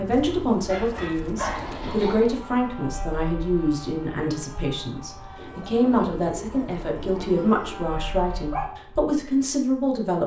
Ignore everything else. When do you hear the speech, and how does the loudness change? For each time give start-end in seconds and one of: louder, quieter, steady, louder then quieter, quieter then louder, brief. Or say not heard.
0.0-10.2 steady.